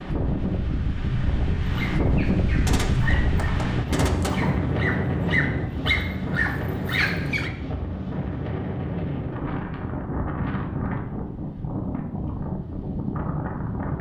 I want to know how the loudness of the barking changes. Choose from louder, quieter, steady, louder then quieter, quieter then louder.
louder.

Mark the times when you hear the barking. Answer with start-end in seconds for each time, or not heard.
1.6-7.5.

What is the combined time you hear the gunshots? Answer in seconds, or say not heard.
2 s.